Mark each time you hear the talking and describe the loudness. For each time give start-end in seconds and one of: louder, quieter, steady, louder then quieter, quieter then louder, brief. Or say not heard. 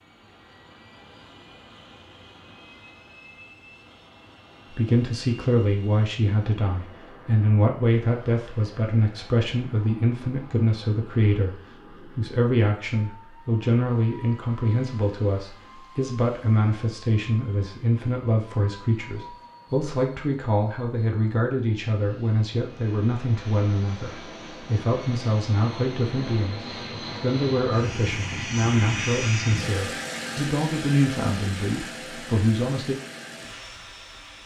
4.7-33.0 steady.